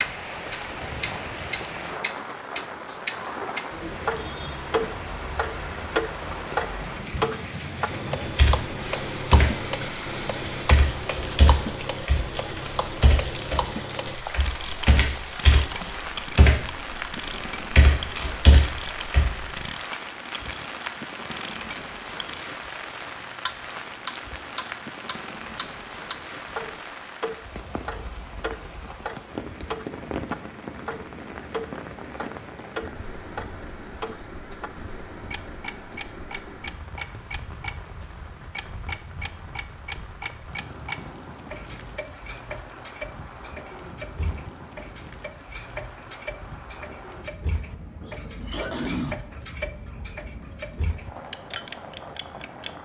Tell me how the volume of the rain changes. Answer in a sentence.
The loudness of the rain goes down.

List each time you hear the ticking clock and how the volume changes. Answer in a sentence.
The ticking clock can be heard from 0.0 to 52.8 s, getting quieter.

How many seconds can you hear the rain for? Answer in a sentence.
The rain can be heard for 53 seconds in total.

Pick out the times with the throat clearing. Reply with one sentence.
The throat clearing can be heard from 48.0 to 49.2 s.